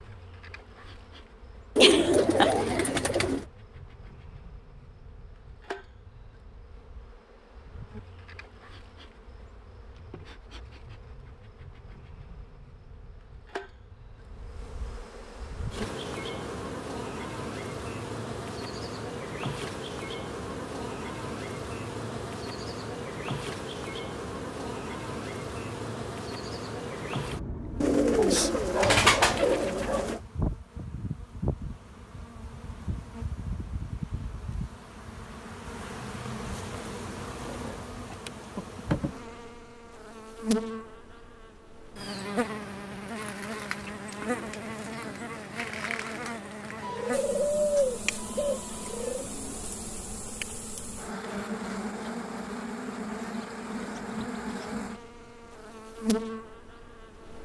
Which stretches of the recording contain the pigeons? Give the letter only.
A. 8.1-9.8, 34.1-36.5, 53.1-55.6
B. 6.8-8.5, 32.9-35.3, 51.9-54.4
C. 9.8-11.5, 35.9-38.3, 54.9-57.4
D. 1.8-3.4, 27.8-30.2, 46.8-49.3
D.